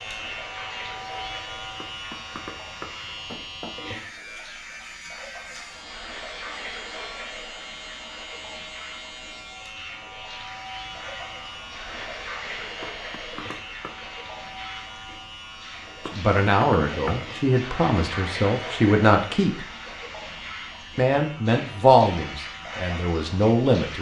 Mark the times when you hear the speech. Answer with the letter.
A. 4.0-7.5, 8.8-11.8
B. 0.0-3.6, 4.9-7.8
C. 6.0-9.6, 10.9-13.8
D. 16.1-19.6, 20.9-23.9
D.